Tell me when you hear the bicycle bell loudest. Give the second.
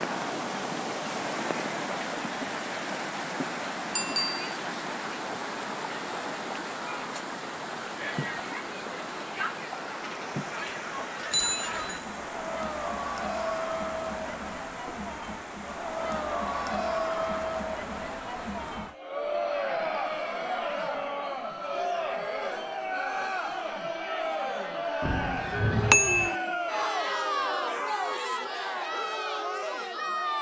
26 s.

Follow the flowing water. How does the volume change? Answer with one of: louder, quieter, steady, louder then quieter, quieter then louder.
quieter.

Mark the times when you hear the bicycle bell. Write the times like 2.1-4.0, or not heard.
4.0-4.5, 11.3-12.1, 25.0-26.4.